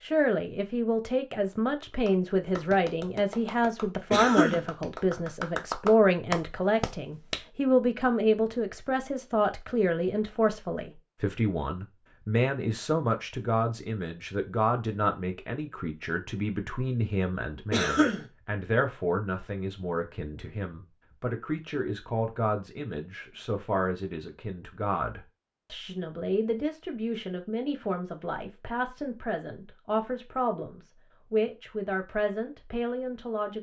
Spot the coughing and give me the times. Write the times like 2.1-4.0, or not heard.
4.1-4.7, 17.7-18.2.